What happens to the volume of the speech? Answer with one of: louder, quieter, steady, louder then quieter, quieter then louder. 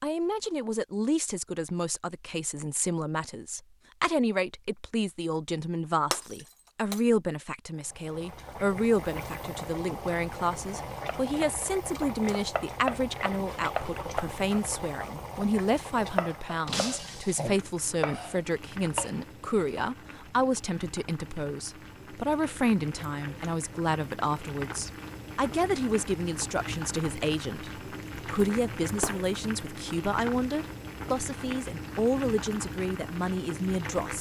steady.